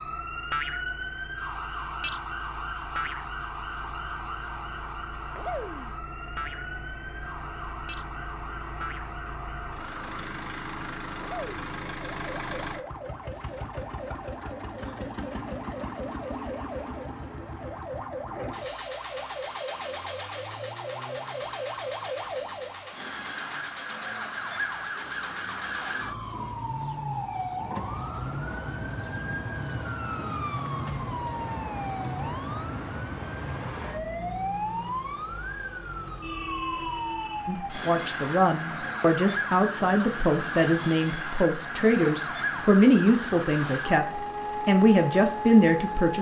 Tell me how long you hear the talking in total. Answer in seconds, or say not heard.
9 s.